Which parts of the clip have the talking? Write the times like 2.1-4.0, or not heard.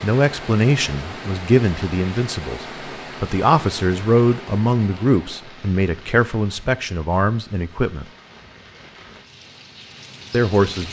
0.0-8.1, 10.3-10.8.